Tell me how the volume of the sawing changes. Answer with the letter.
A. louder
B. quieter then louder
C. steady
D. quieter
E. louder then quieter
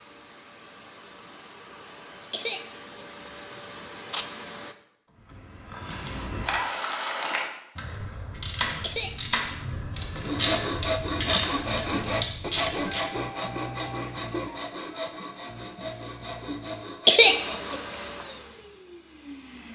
D.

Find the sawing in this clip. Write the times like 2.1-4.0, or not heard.
10.2-17.9.